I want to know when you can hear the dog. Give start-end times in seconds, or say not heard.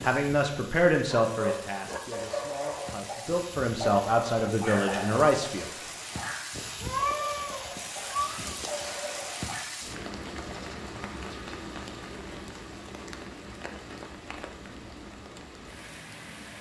1.1-9.7.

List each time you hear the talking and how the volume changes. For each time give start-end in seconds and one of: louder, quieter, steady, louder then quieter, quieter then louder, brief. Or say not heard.
0.0-5.7 quieter then louder.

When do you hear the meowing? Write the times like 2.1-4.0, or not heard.
6.8-8.7.